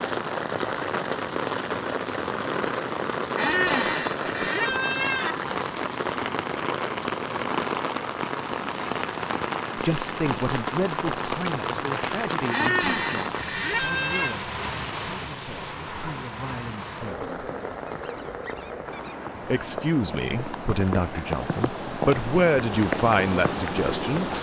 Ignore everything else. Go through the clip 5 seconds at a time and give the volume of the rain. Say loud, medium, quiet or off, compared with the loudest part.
loud, loud, loud, medium, loud.